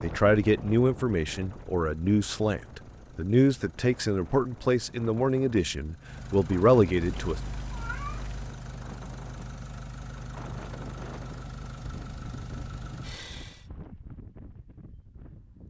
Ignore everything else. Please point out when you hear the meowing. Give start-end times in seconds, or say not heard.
7.0-8.6.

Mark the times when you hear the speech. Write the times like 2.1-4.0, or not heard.
0.0-7.4.